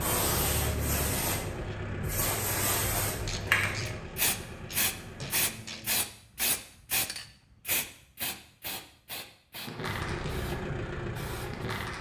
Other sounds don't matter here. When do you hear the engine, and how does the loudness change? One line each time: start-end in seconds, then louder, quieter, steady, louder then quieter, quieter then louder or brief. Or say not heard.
0.0-5.7 quieter
9.8-11.9 brief.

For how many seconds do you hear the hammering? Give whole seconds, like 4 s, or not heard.
not heard.